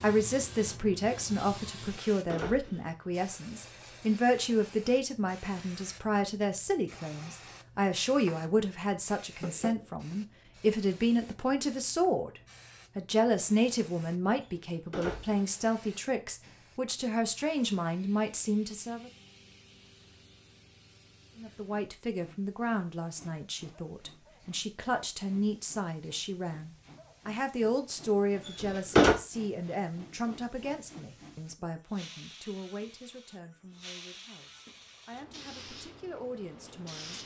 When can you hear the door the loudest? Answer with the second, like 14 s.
29 s.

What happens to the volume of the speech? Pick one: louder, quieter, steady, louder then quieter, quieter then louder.
quieter.